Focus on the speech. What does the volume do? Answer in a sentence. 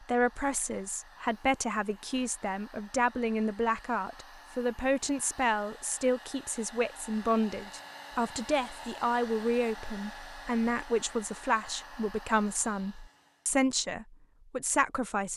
The volume of the speech stays about the same.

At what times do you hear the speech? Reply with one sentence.
The speech can be heard from 0.0 to 15.3 s.